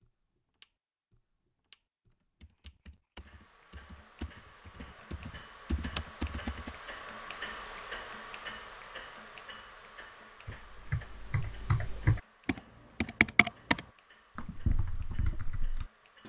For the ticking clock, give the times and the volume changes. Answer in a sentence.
You can hear the ticking clock from 0.0 to 16.2 s, getting louder then quieter.